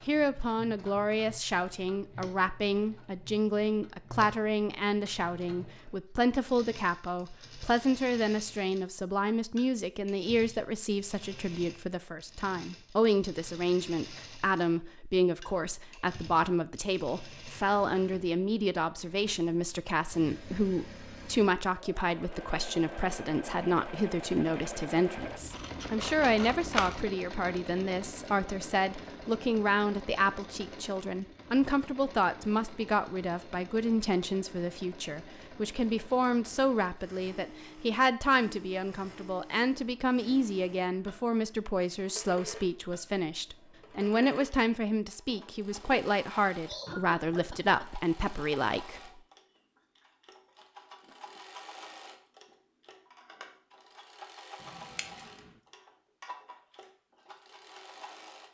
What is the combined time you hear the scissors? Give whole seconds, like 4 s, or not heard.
3 s.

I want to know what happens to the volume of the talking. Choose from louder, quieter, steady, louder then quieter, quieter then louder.
steady.